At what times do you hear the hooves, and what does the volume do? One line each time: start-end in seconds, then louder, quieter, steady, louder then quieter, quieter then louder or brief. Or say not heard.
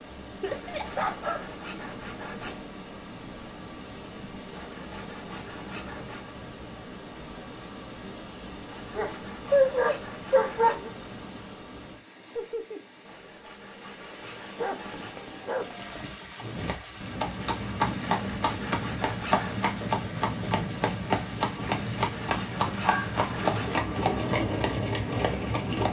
16.4-25.8 steady.